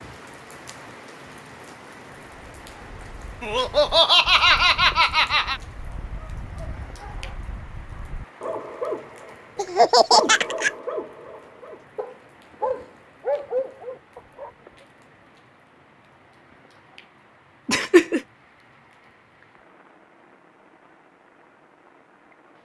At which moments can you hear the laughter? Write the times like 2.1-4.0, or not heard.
3.4-5.6, 9.6-10.7, 17.6-18.2.